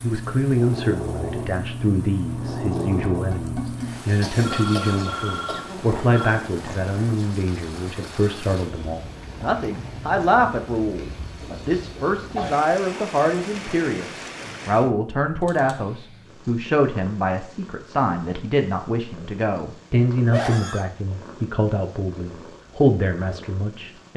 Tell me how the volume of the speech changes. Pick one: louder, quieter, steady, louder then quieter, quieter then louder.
steady.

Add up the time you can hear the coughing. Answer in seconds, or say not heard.
3 s.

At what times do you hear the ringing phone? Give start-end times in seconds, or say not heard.
4.4-6.3.